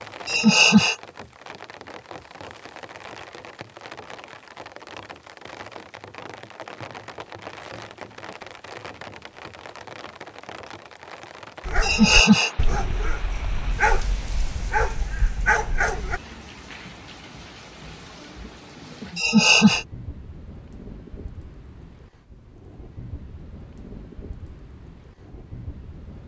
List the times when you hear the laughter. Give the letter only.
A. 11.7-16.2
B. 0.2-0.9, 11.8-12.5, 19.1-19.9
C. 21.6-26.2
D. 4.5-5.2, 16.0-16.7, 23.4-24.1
B.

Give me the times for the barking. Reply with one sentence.
The barking can be heard from 11.7 to 16.2 s.